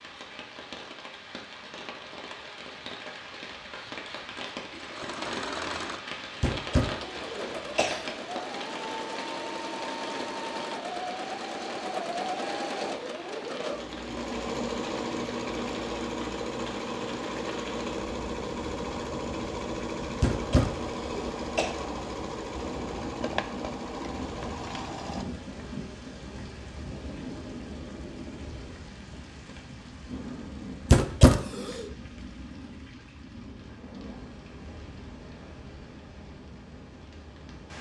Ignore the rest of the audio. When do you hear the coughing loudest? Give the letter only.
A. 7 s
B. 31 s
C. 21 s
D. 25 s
B.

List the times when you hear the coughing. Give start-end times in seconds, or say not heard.
6.4-8.1, 20.2-21.7, 30.9-31.9.